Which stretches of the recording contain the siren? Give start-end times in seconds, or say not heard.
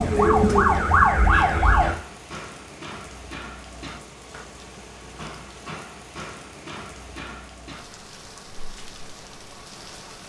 0.0-1.9.